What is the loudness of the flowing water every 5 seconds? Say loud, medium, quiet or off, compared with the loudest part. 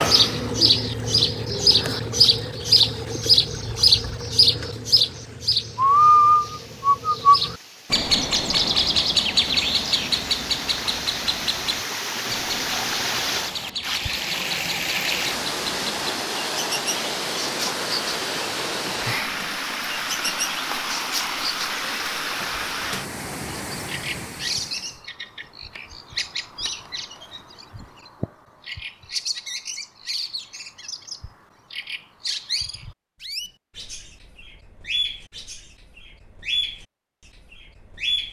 quiet, quiet, loud, loud, loud, off, off, off.